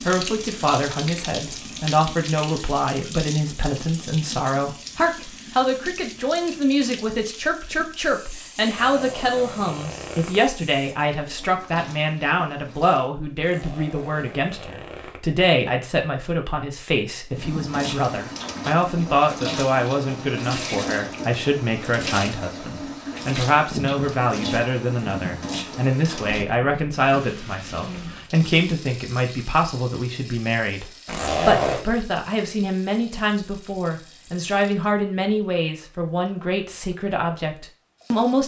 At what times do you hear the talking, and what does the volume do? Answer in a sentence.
The talking can be heard from 0.0 to 38.4 s, at a steady volume.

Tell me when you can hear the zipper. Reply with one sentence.
The zipper can be heard from 8.6 to 10.4 s, from 13.4 to 15.2 s and from 31.1 to 31.9 s.